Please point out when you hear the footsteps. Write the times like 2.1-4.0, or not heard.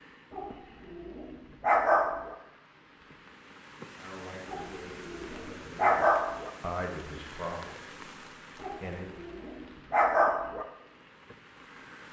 not heard.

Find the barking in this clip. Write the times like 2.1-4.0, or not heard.
0.3-2.4, 4.5-6.5, 8.6-10.7.